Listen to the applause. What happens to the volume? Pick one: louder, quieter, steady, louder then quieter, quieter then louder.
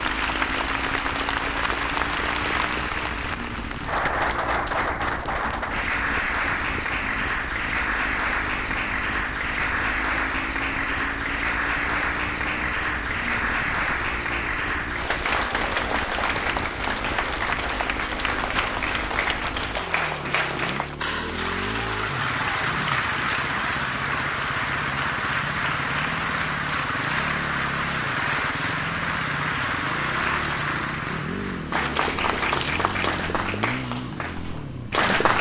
steady.